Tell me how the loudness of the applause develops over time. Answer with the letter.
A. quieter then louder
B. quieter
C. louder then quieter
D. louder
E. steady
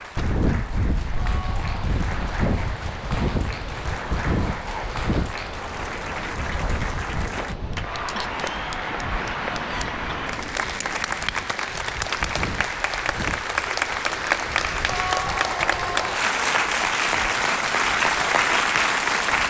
D.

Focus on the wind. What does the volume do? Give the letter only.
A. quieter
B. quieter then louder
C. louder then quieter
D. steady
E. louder
A.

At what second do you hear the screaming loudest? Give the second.
15 s.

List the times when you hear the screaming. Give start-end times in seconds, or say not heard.
1.1-1.7, 14.8-16.2.